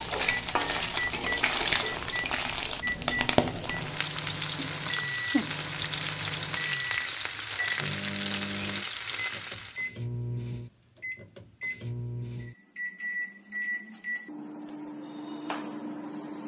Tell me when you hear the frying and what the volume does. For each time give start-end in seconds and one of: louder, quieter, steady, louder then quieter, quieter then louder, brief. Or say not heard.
0.0-9.9 steady.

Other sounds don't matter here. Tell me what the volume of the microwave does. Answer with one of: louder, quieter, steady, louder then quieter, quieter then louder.
steady.